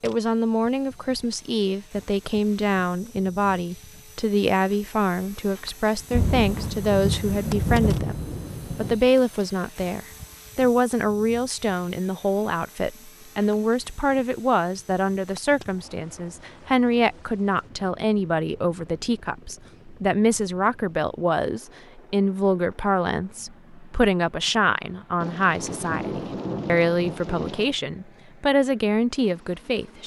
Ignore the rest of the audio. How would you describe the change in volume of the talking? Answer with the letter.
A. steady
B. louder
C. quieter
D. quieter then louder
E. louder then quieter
A.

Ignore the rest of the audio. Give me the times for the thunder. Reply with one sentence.
The thunder can be heard from 6.1 to 8.9 s and from 25.2 to 27.7 s.